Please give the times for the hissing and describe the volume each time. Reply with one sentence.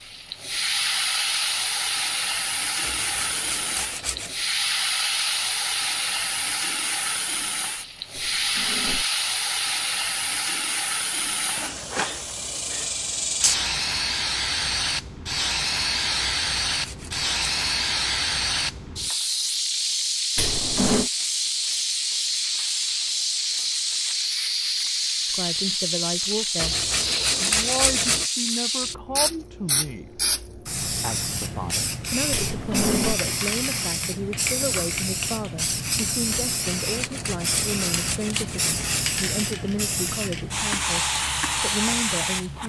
You can hear the hissing from 0.0 to 42.6 s, at a steady volume.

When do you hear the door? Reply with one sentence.
The door can be heard from 8.2 to 9.1 s, from 20.4 to 21.1 s and from 32.3 to 33.2 s.